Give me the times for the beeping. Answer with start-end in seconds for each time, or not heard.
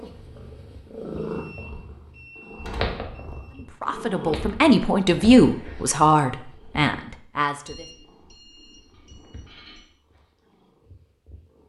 1.4-3.6, 7.7-9.9.